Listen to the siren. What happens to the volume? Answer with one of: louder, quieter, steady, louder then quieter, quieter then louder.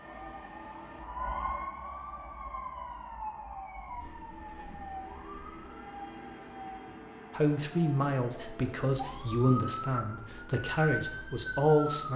quieter then louder.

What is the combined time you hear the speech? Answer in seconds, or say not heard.
5 s.